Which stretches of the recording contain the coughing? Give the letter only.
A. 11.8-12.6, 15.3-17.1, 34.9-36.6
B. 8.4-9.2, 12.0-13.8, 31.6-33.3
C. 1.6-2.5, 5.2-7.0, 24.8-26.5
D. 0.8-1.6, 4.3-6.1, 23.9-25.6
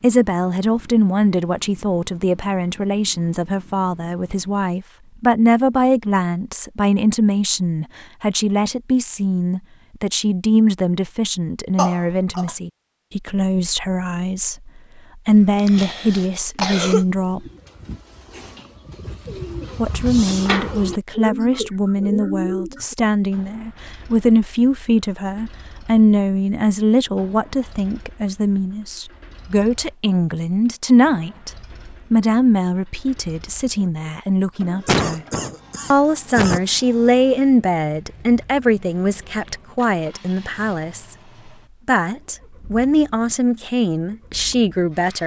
A.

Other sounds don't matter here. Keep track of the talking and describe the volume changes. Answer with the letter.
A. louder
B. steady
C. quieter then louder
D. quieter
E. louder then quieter
B.